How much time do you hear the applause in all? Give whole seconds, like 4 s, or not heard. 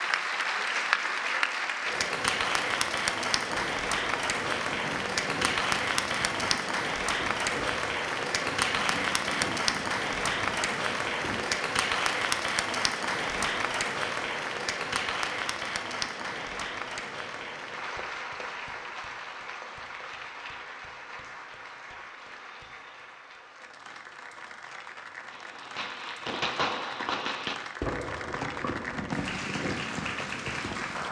31 s.